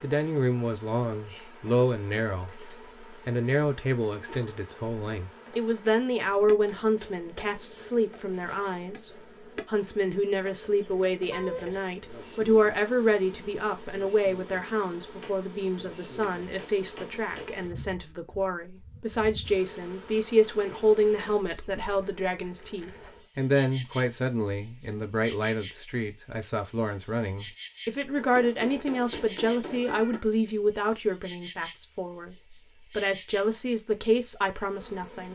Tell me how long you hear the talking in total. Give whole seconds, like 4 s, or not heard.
35 s.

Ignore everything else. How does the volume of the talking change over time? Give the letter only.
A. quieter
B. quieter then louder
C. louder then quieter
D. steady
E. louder
D.